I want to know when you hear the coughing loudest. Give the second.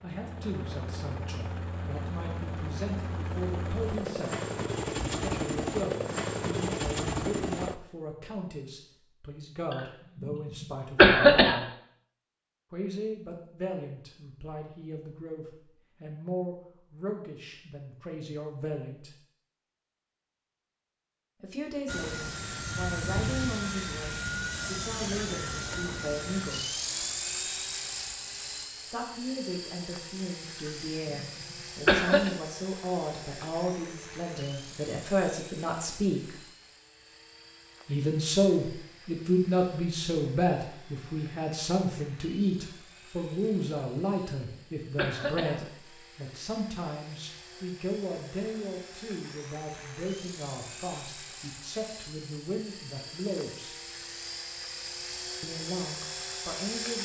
11 s.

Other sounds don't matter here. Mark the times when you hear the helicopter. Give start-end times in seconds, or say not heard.
0.0-7.8, 21.9-56.9.